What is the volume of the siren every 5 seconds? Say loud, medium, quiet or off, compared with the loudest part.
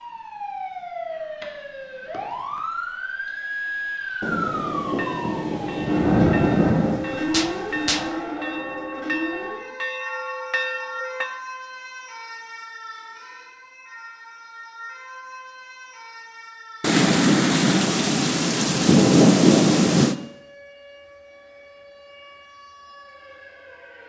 loud, loud, medium, quiet, quiet.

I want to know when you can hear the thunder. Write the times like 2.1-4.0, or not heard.
4.2-8.1, 16.8-20.1.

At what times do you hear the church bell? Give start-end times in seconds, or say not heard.
4.8-11.3.